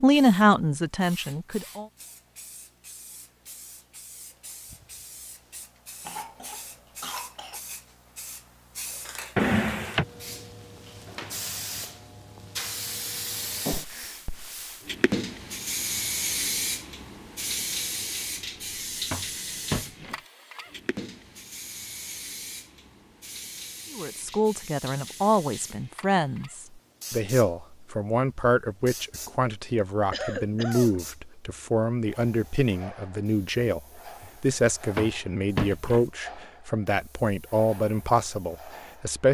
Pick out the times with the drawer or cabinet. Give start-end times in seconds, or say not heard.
9.3-10.1, 18.4-20.1, 34.2-36.0.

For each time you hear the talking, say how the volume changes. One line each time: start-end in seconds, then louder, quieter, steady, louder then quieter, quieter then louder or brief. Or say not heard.
0.0-1.9 brief
23.9-39.3 steady.